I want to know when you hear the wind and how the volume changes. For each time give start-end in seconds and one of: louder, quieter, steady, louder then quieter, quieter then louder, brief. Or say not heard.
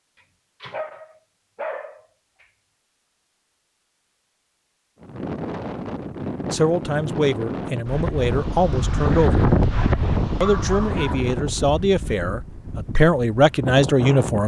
5.0-14.4 louder then quieter.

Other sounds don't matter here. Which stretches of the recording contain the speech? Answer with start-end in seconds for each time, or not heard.
6.5-9.4, 10.4-14.4.